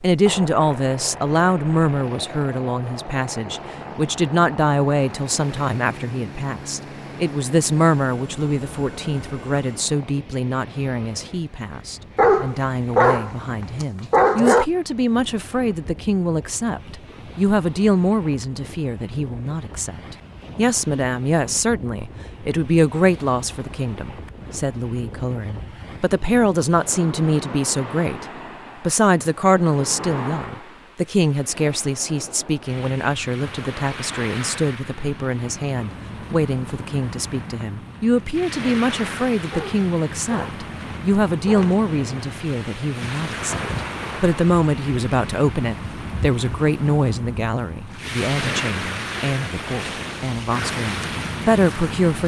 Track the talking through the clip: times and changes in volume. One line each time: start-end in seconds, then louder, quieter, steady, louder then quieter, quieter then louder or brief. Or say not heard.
0.0-52.2 steady.